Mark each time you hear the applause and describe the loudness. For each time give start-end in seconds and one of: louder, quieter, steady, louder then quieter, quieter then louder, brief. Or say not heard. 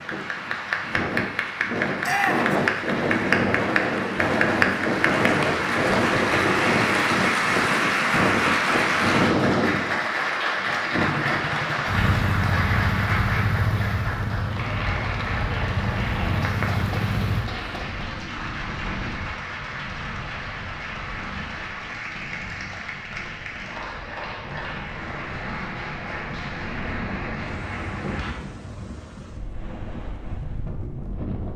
0.0-28.4 quieter.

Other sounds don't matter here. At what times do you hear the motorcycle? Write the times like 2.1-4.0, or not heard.
11.0-17.5.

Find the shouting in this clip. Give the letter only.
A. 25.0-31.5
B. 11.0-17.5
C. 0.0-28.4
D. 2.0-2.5
D.